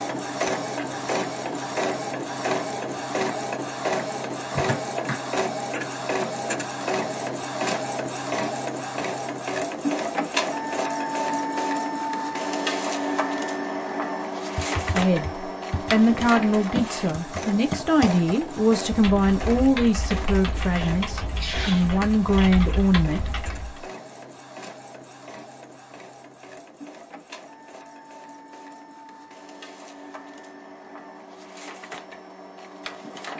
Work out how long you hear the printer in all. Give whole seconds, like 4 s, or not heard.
33 s.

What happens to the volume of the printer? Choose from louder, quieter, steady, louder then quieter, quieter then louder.
quieter.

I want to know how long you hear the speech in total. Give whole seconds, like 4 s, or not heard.
8 s.